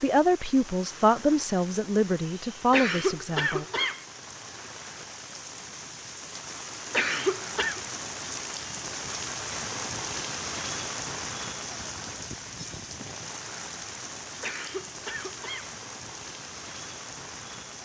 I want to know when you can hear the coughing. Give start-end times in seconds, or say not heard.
2.7-4.0, 6.9-7.8, 14.4-15.8.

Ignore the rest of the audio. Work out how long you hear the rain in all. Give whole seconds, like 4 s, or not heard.
18 s.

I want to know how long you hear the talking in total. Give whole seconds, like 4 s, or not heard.
4 s.